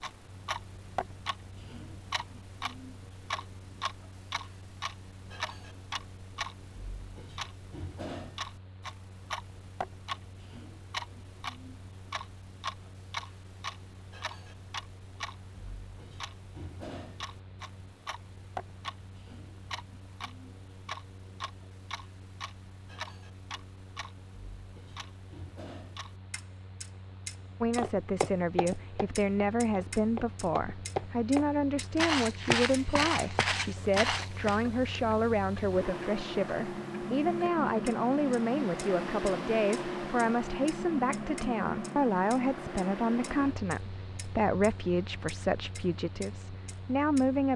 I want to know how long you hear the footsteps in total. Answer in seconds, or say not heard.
7 s.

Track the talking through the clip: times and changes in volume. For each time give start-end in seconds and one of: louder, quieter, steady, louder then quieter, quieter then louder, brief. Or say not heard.
27.6-47.5 steady.